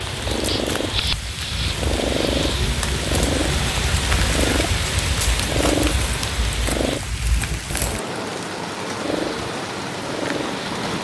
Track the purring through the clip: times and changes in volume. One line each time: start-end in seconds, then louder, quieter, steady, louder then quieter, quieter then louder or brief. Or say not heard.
0.0-7.0 steady
9.0-11.0 brief.